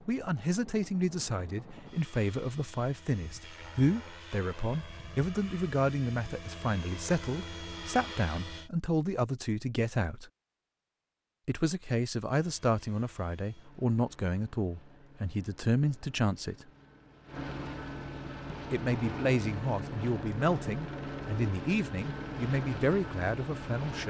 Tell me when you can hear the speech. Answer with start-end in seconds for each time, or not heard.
0.1-10.3, 11.4-16.6, 18.5-24.0.